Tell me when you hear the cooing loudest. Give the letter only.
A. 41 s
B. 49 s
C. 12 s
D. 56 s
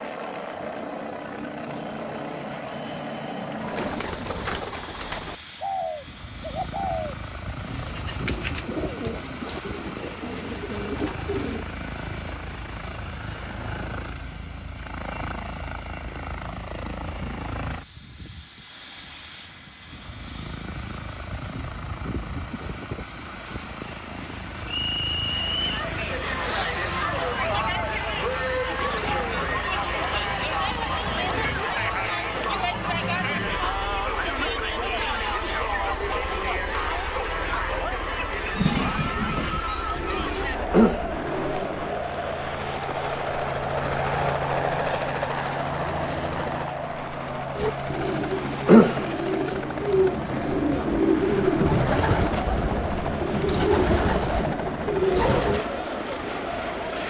B.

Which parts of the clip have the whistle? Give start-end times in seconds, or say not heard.
24.6-25.8.